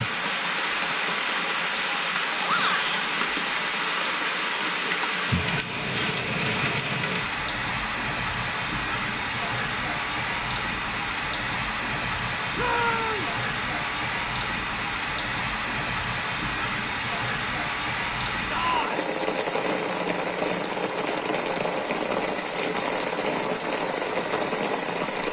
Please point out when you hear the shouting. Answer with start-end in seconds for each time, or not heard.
2.4-2.9, 12.6-13.3, 18.5-19.1.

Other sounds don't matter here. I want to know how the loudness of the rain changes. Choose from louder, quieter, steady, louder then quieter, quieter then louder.
steady.